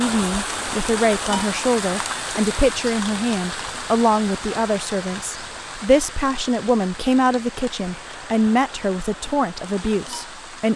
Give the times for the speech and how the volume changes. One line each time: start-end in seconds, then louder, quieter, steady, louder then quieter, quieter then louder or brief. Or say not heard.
0.0-10.7 steady.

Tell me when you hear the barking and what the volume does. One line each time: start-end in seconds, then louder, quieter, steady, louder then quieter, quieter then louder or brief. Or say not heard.
not heard.